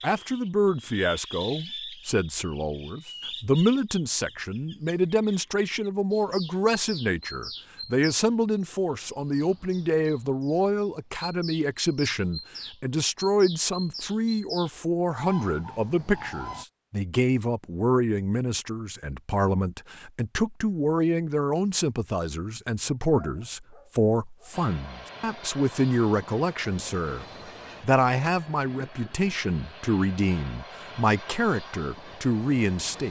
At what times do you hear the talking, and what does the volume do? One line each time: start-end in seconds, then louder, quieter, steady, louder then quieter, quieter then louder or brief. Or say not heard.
0.0-33.0 steady.